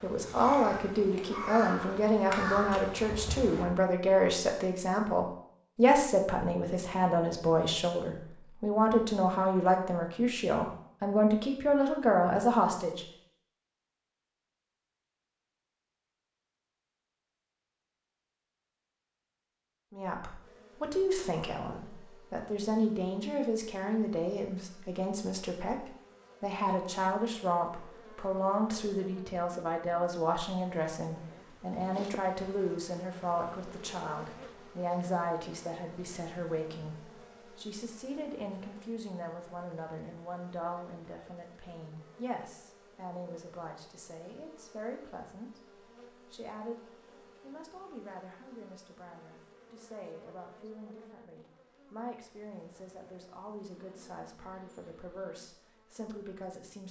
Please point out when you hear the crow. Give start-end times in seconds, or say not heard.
0.0-3.6.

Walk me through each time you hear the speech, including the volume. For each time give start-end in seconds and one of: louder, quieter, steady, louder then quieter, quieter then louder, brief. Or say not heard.
0.0-13.1 steady
19.9-56.8 quieter.